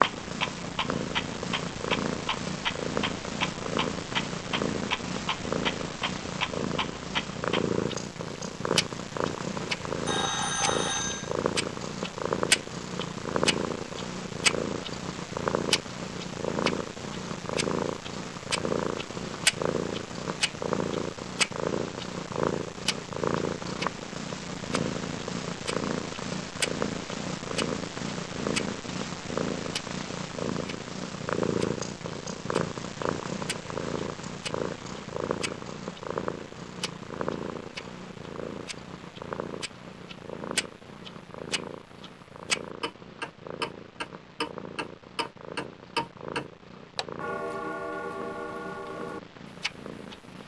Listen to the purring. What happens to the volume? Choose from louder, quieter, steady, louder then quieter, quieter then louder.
quieter.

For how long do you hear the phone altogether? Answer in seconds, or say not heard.
2 s.